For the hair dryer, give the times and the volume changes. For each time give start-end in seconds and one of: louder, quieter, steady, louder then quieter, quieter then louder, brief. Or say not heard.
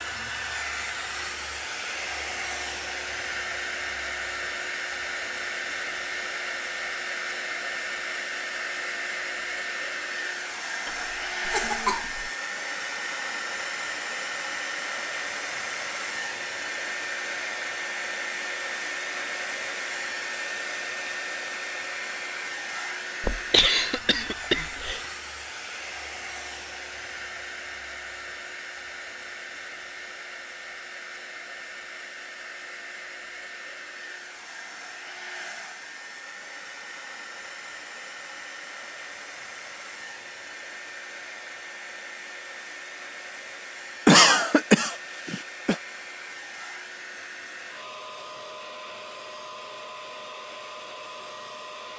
0.0-51.9 quieter.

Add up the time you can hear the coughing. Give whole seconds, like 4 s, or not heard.
5 s.